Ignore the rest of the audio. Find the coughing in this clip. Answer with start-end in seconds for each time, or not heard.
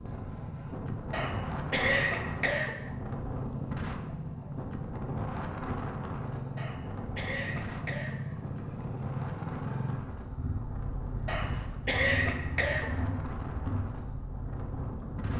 1.1-2.7, 6.5-8.2, 11.2-12.8.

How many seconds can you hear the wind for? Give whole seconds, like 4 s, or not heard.
15 s.